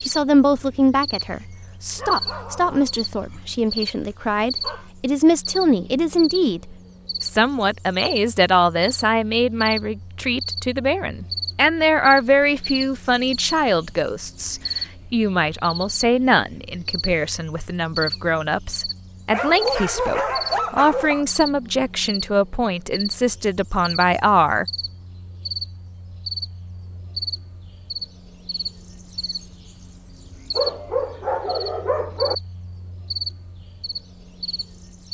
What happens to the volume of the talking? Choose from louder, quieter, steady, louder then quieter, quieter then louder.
steady.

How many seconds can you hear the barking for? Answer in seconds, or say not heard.
7 s.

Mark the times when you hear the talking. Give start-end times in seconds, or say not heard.
0.0-24.6.